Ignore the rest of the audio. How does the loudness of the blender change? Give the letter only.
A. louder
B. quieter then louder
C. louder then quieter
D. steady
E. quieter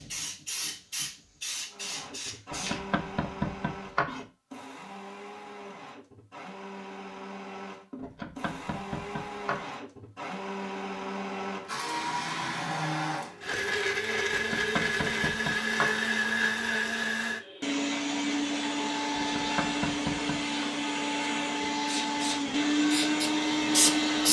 A.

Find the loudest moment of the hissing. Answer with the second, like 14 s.
24 s.